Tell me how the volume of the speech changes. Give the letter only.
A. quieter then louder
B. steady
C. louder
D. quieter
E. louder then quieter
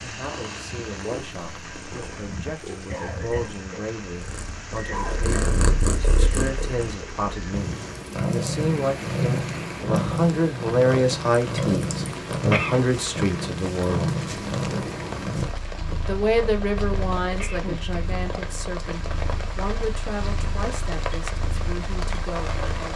E.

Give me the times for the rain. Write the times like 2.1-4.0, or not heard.
0.0-22.9.